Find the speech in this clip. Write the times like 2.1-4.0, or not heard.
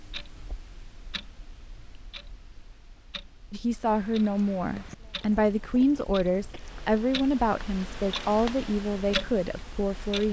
3.5-10.2.